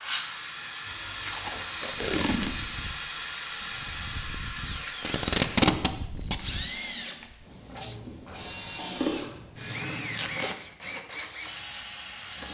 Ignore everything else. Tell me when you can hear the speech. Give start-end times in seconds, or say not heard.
not heard.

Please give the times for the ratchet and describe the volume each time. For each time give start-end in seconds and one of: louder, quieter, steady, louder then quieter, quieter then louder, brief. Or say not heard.
not heard.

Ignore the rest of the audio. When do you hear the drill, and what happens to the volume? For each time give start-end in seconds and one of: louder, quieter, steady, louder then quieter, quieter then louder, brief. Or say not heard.
0.0-12.4 steady.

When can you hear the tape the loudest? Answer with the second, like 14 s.
6 s.